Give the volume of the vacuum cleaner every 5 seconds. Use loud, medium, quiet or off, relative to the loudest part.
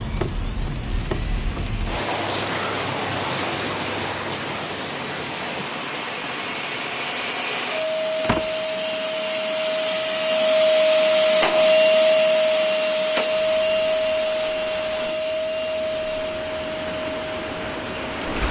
quiet, medium, loud, medium.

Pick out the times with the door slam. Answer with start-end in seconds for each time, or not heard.
8.2-8.7.